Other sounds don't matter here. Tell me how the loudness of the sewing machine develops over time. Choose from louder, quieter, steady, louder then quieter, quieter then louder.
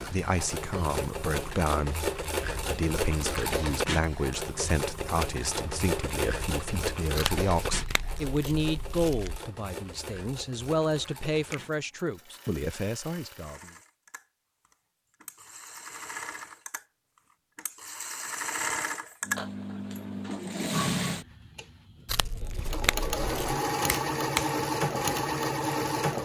quieter then louder.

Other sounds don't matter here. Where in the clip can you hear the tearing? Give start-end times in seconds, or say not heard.
7.2-9.4, 22.1-23.6.